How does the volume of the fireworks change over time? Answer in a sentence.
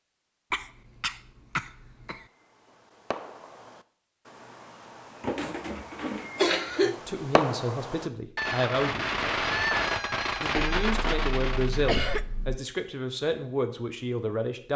The volume of the fireworks goes up.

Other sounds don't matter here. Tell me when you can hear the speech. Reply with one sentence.
You can hear the speech from 6.8 to 9.1 s and from 10.4 to 14.7 s.